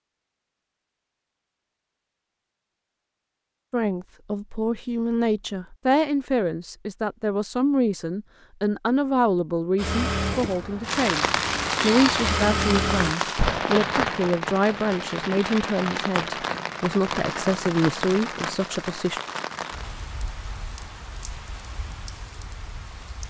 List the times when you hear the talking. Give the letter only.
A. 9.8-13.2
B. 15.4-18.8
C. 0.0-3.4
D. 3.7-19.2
D.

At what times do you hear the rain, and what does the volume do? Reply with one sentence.
You can hear the rain from 10.8 to 23.2 s, getting quieter.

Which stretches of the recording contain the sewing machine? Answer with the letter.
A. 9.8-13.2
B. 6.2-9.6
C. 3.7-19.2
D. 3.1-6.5
A.